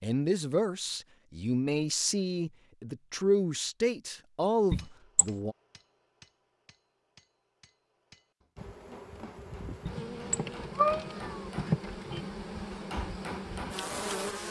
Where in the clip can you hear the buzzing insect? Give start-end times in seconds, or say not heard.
8.6-14.4.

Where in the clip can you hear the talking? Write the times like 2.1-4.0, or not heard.
0.0-5.5.